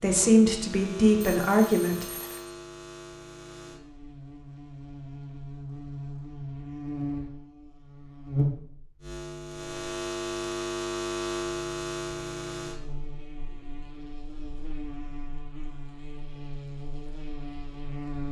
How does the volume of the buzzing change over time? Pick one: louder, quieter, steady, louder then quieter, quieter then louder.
louder then quieter.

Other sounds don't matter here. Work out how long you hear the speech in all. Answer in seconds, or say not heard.
2 s.